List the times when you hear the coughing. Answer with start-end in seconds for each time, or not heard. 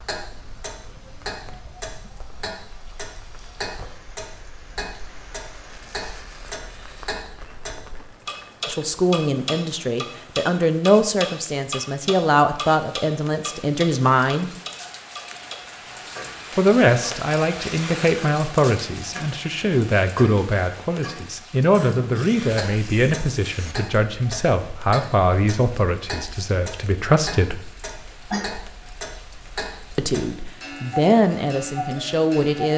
27.9-28.6.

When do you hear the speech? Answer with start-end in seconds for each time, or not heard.
8.7-14.5, 16.6-27.6, 29.9-32.7.